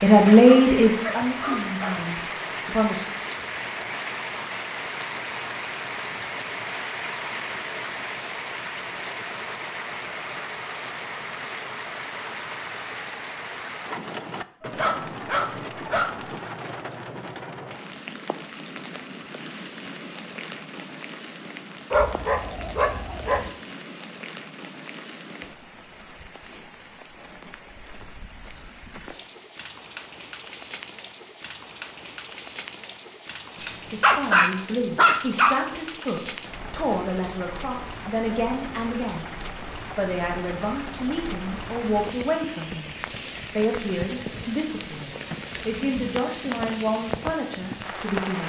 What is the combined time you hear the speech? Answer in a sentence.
The speech can be heard for 18 seconds in total.